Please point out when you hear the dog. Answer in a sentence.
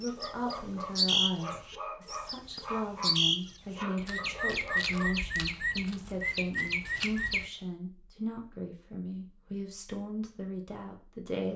You can hear the dog from 0.1 to 5.1 s.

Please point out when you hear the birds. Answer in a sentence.
The birds can be heard from 0.0 to 7.5 s.